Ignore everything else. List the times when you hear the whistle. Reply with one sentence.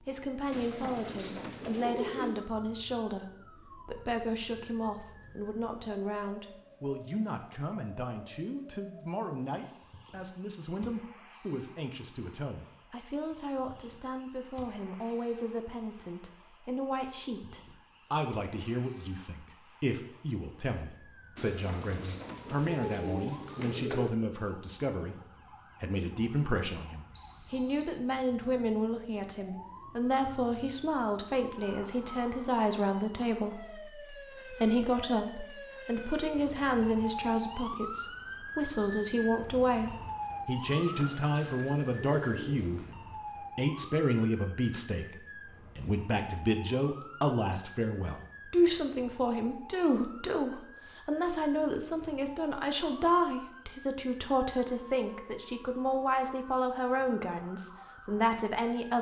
You can hear the whistle from 27.1 to 27.9 s.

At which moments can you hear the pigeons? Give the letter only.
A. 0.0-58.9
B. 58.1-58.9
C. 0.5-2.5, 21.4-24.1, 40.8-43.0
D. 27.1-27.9
C.